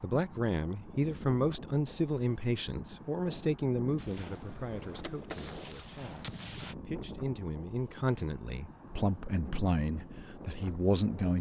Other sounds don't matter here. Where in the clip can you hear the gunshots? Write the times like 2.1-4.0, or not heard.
4.0-6.8.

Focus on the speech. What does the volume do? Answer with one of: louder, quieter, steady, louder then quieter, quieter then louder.
quieter then louder.